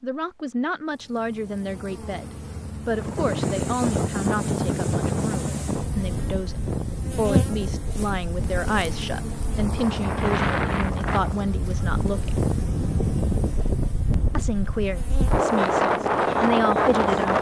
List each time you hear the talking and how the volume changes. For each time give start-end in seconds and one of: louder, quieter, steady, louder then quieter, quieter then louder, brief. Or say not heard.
0.0-12.3 steady
14.3-17.3 brief.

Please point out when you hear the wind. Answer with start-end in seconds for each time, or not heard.
2.9-17.3.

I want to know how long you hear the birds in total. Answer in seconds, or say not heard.
not heard.